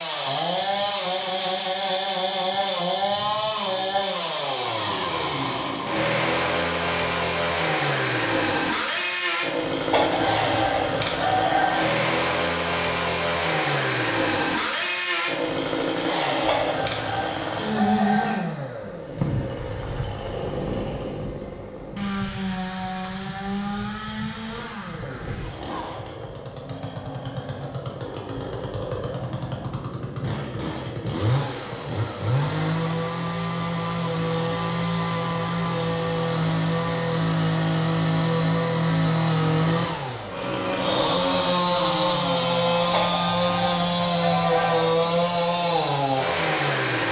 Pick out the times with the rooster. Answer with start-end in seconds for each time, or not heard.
9.9-11.8, 16.4-18.4, 42.9-44.8.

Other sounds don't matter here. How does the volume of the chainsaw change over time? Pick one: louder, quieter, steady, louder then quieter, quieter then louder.
quieter then louder.